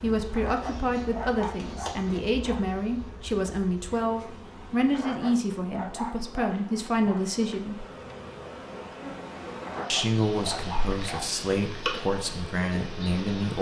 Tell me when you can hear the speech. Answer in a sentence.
You can hear the speech from 0.0 to 7.8 s and from 9.9 to 13.5 s.